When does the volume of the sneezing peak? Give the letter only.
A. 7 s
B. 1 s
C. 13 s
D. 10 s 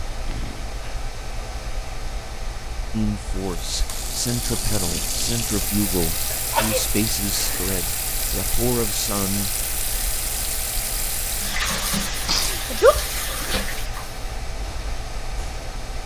C.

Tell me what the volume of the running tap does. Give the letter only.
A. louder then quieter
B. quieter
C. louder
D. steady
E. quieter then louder
D.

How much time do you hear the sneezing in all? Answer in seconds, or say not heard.
3 s.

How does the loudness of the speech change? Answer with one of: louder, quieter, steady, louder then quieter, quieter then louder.
steady.